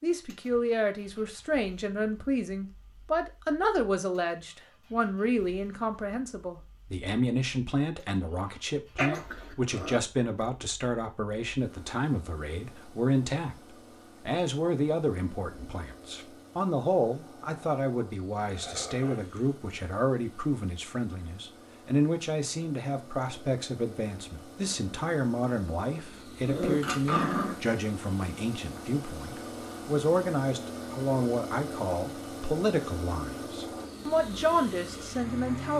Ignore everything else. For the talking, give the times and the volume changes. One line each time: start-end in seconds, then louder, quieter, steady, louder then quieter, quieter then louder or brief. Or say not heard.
0.0-35.7 steady.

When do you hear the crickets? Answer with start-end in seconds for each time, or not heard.
not heard.